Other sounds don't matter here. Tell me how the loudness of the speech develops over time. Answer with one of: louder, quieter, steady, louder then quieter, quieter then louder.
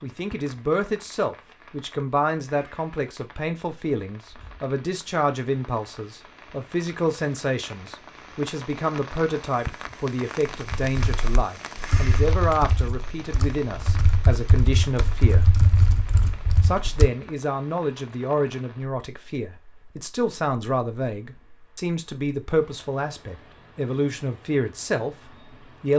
steady.